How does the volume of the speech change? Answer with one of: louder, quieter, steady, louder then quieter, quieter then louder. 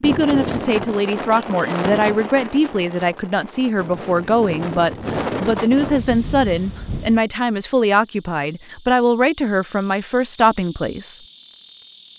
steady.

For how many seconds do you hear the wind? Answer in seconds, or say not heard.
7 s.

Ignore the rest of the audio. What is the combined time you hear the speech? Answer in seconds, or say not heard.
11 s.